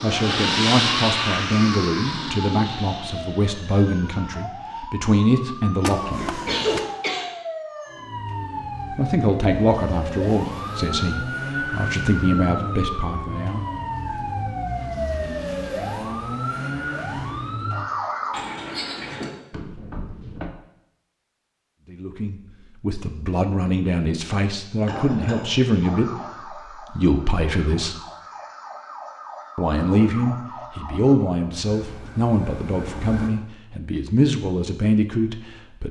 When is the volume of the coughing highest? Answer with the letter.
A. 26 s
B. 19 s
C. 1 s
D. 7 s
D.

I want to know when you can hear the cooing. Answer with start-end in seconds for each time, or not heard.
not heard.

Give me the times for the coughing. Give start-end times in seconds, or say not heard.
5.8-7.3, 18.3-19.3, 24.9-25.9.